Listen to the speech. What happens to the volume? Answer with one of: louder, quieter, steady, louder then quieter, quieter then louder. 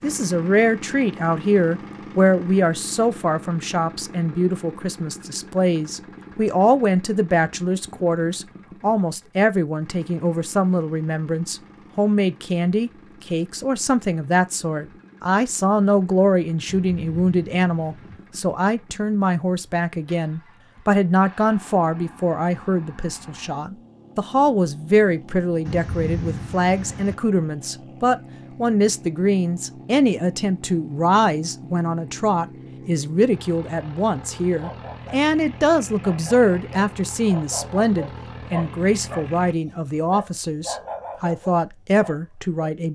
steady.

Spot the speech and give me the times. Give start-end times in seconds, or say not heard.
0.0-42.9.